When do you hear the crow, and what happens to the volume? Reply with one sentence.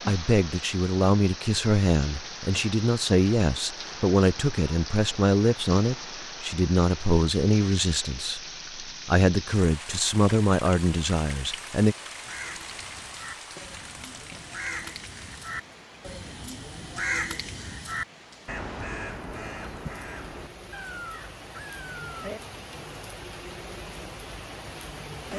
You can hear the crow from 12.2 to 22.3 s, getting louder then quieter.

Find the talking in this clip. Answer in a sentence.
You can hear the talking from 0.1 to 11.9 s.